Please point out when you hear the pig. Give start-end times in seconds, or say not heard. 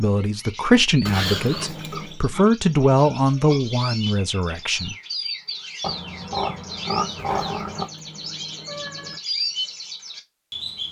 1.9-3.6, 5.8-7.8.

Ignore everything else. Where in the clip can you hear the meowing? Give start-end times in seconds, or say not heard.
1.1-2.2, 7.2-9.2.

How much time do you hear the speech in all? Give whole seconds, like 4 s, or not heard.
5 s.